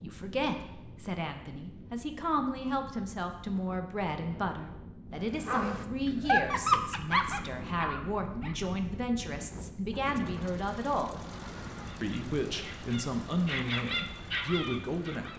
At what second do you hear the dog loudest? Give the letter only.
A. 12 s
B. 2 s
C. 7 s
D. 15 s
C.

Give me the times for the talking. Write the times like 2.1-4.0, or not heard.
0.0-11.2, 12.0-15.3.